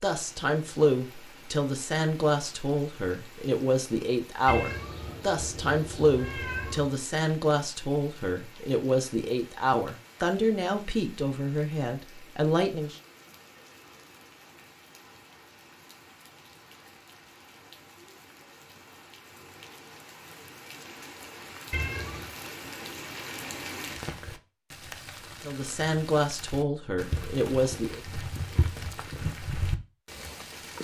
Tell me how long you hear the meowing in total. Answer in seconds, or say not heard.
3 s.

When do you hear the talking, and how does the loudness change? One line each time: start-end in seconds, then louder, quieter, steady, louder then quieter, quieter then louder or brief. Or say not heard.
0.0-12.9 steady
25.4-28.0 brief.